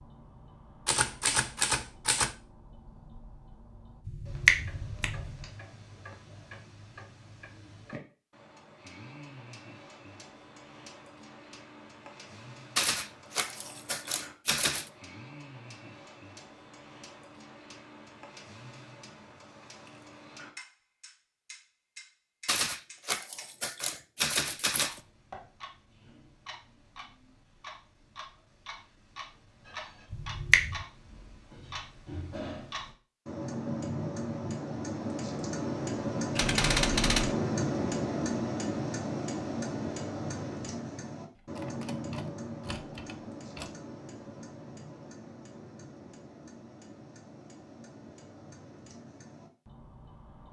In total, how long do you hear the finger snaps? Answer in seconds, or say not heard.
2 s.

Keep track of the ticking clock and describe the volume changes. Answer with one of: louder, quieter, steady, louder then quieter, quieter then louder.
louder then quieter.